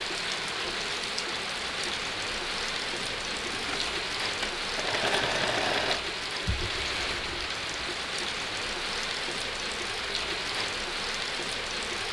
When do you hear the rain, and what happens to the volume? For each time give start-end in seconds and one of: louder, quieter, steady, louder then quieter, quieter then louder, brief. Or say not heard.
0.0-12.0 steady.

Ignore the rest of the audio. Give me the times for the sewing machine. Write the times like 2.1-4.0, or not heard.
3.0-6.0.